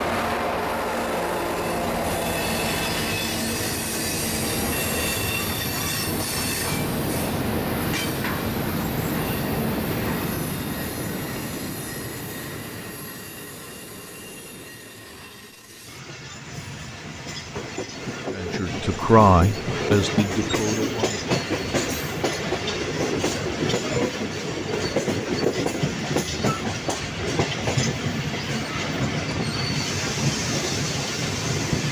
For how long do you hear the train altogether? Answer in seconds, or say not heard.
32 s.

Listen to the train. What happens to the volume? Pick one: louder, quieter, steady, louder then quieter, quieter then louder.
quieter then louder.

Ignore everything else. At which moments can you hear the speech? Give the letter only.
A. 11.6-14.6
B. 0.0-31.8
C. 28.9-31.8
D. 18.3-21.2
D.